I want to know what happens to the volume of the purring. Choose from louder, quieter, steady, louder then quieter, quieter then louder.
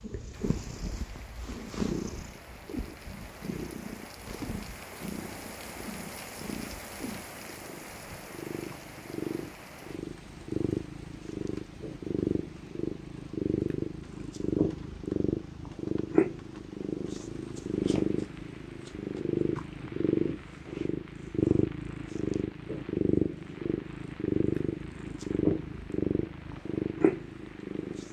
louder.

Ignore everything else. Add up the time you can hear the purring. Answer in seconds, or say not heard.
28 s.